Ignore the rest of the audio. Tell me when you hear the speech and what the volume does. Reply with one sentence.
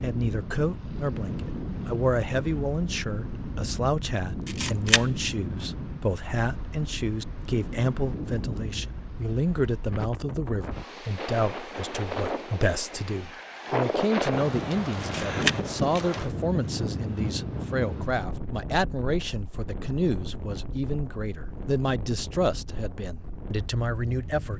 You can hear the speech from 0.0 to 24.5 s, at a steady volume.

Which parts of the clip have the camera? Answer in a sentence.
You can hear the camera from 4.5 to 5.0 s and from 15.0 to 16.1 s.